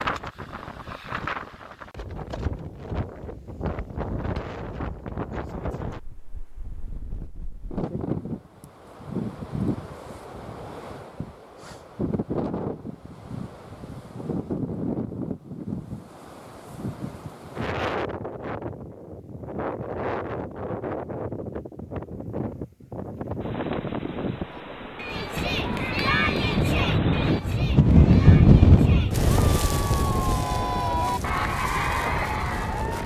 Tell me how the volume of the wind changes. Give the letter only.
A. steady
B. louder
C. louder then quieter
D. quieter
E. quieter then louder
B.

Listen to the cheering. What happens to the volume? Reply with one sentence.
The volume of the cheering goes down, then up.